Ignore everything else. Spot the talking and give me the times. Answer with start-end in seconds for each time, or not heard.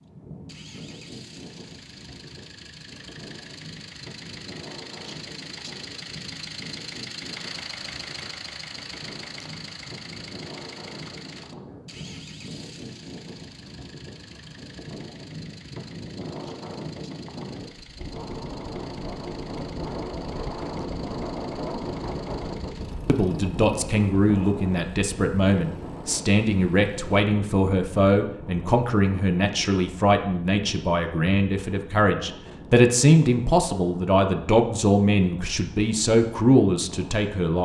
23.1-37.6.